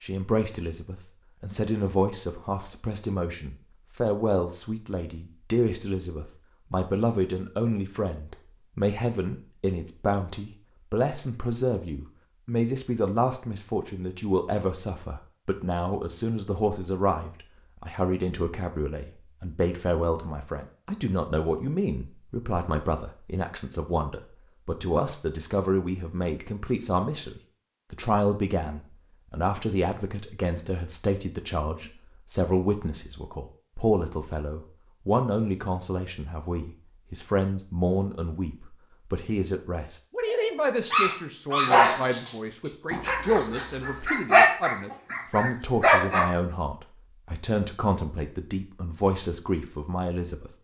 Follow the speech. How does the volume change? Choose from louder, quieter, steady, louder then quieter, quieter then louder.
steady.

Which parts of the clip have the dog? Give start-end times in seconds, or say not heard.
40.3-46.2.